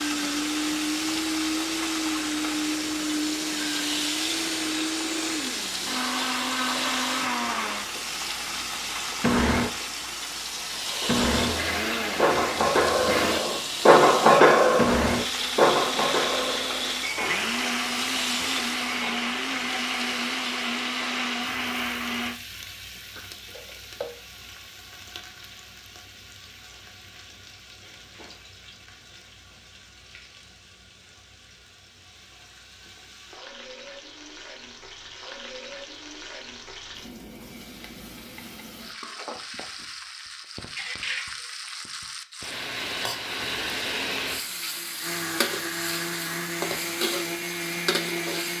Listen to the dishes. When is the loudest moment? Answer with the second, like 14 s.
14 s.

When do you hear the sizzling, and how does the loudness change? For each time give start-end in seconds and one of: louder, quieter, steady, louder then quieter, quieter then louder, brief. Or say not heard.
0.0-48.5 quieter then louder.